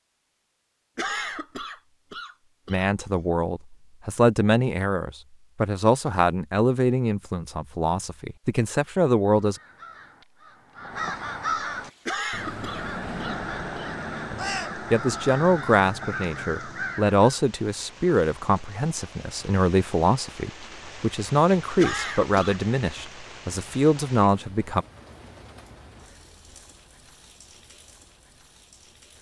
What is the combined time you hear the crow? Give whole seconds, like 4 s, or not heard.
8 s.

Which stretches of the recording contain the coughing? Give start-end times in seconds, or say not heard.
0.9-2.9, 12.1-13.9, 21.8-22.6.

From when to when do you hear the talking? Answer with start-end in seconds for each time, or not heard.
2.6-9.6, 14.3-24.9.